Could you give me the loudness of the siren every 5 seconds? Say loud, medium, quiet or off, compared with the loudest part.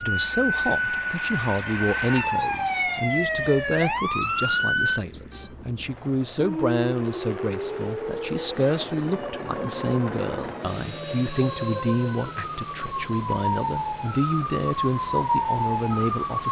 loud, medium, medium, loud.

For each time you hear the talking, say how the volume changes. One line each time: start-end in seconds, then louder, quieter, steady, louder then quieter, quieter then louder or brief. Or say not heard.
0.0-16.4 steady.